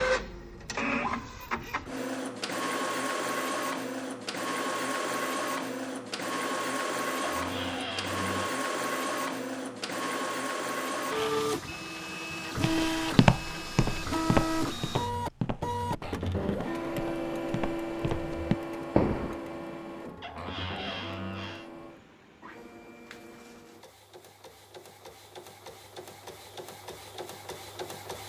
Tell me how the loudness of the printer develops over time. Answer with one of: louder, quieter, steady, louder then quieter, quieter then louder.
quieter.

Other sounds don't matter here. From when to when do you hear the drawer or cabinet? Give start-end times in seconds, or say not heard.
7.2-8.5, 20.2-21.7.